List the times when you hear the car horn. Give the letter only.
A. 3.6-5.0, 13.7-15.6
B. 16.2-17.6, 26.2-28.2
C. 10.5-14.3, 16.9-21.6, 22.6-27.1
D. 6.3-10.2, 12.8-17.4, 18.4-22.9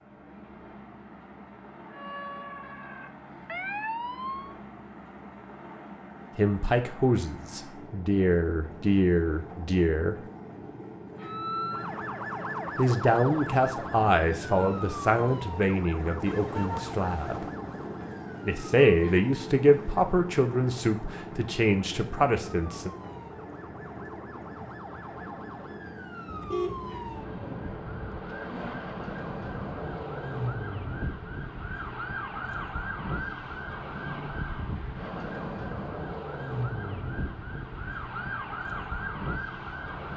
B.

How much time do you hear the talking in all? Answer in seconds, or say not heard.
13 s.